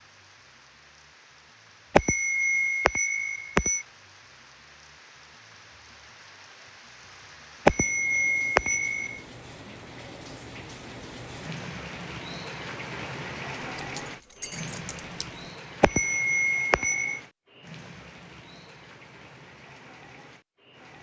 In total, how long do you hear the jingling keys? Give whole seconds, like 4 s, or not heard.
2 s.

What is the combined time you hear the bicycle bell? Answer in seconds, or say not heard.
5 s.